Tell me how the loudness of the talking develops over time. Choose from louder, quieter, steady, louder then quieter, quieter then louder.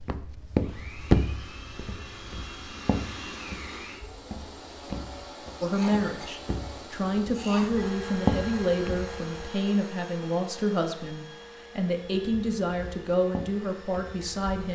steady.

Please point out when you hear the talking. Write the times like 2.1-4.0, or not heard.
5.6-14.7.